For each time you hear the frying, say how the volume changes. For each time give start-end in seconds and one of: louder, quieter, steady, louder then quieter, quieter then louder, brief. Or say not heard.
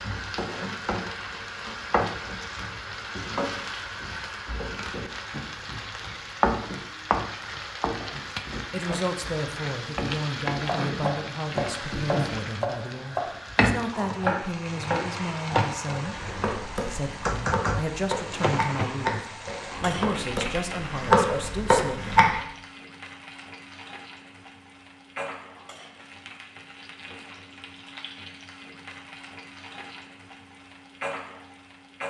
0.0-32.0 quieter.